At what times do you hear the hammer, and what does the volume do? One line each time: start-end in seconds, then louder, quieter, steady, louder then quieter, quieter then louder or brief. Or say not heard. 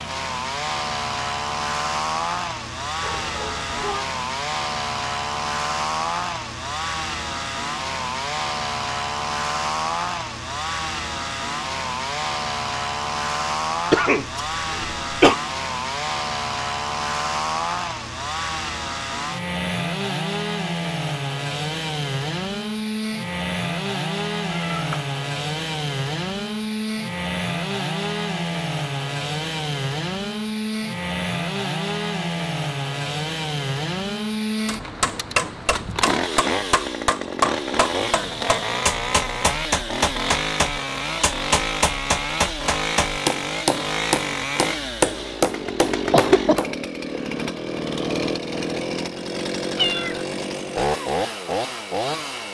34.6-46.8 steady.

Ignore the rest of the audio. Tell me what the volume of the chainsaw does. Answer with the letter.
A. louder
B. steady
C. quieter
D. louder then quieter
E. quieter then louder
B.